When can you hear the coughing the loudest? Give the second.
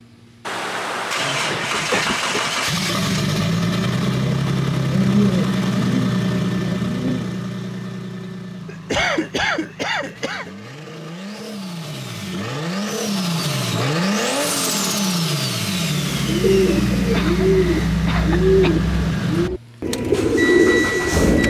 9 s.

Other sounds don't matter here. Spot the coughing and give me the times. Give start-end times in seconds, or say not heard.
1.5-2.5, 8.7-10.5, 17.1-18.8.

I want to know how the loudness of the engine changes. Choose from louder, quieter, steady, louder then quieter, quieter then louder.
quieter then louder.